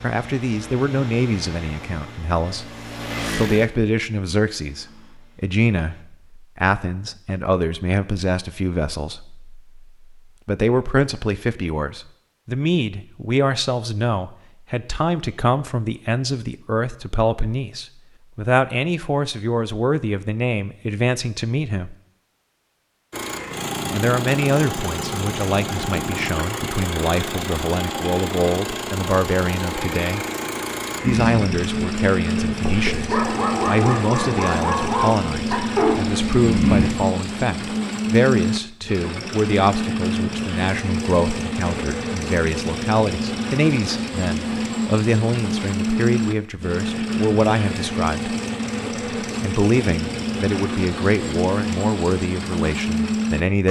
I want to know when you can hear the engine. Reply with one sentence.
You can hear the engine from 0.0 to 6.0 s and from 23.1 to 53.6 s.